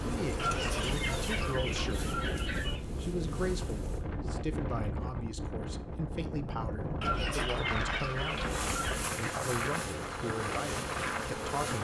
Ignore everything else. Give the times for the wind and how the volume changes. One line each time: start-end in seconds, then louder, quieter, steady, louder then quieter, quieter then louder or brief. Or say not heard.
0.0-11.7 steady.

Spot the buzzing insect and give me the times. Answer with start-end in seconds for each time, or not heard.
0.0-4.0, 8.3-11.7.